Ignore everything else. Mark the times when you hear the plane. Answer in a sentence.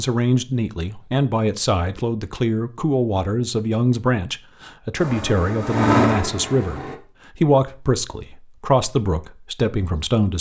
The plane can be heard from 5.0 to 7.0 s.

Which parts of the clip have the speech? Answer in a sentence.
The speech can be heard from 0.0 to 10.3 s.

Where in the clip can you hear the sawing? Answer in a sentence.
The sawing can't be heard in this clip.